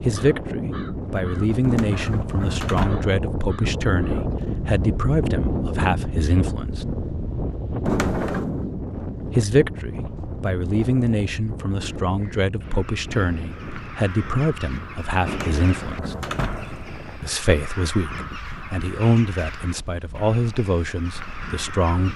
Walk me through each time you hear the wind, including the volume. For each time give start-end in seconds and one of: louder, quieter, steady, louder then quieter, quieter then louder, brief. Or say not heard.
0.0-22.1 quieter.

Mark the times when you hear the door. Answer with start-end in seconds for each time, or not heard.
1.6-3.1, 7.8-8.7, 15.2-16.9.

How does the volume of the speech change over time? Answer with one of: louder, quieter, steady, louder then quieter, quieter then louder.
steady.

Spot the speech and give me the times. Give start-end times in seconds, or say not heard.
0.1-6.8, 9.3-16.1, 17.2-22.1.